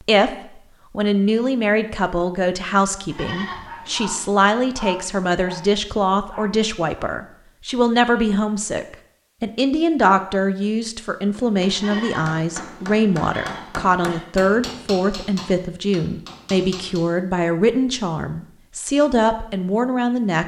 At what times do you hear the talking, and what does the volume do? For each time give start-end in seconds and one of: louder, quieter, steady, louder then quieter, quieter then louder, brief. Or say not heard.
0.1-20.4 steady.